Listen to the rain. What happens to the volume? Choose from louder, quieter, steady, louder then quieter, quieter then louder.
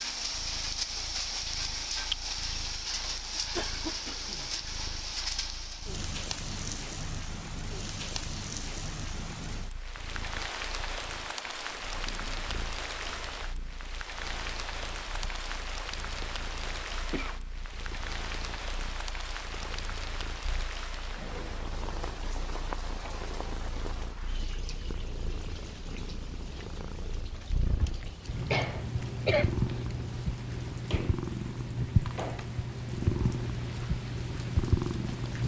quieter.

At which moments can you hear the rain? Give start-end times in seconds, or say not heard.
0.0-35.4.